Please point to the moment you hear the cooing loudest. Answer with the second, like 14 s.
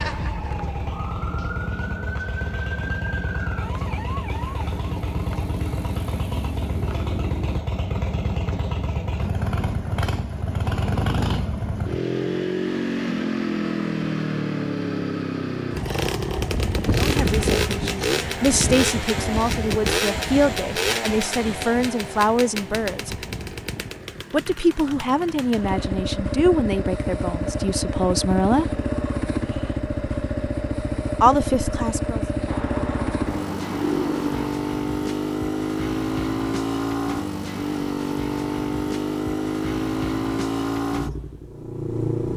34 s.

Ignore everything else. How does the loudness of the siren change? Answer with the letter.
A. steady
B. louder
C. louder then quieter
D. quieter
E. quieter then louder
A.